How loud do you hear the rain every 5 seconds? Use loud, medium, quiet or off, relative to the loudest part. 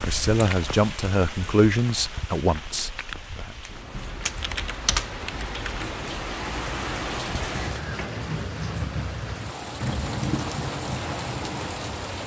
medium, loud, loud.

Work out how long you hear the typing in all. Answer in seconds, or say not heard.
2 s.